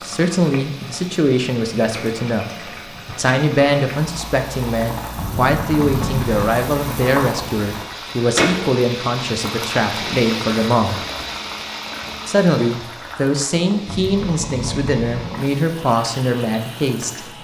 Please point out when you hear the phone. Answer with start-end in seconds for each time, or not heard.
5.2-6.5, 13.8-15.3.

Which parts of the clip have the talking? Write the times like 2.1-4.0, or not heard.
0.0-2.5, 3.0-11.0, 12.2-17.3.